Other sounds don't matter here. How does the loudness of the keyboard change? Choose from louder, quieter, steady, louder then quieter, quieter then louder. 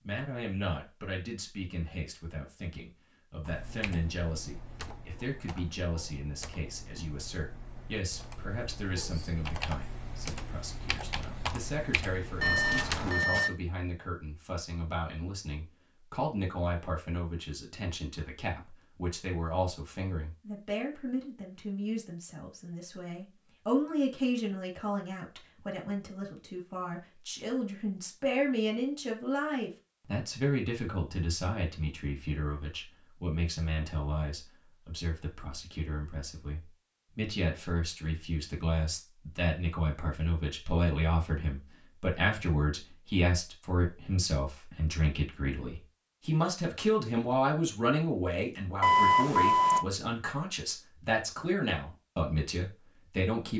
louder.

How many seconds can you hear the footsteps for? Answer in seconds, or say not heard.
not heard.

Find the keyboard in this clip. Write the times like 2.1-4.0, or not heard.
3.5-13.2.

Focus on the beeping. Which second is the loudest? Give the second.
49 s.